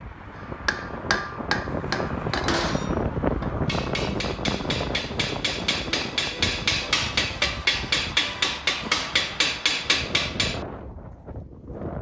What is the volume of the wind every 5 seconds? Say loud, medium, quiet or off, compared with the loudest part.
loud, medium, medium.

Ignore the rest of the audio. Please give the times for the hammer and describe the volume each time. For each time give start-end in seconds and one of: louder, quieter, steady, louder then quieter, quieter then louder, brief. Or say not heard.
0.7-10.6 quieter then louder.